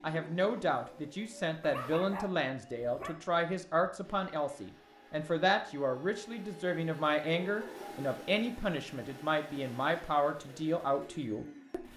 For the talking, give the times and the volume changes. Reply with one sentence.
The talking can be heard from 0.0 to 11.8 s, at a steady volume.